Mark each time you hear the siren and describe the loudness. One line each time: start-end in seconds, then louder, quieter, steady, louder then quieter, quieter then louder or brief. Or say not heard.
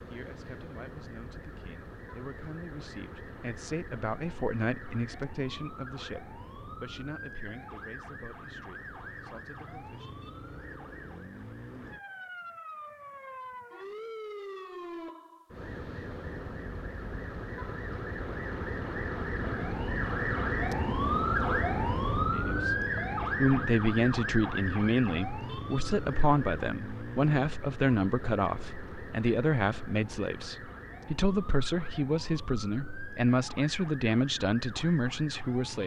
0.0-35.8 louder then quieter.